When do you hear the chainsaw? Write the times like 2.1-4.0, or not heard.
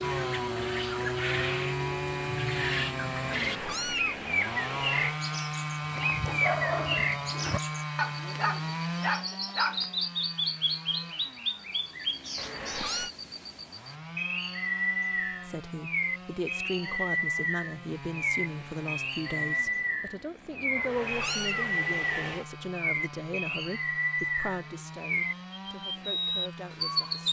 0.0-27.2.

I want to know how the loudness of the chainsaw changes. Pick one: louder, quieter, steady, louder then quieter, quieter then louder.
quieter.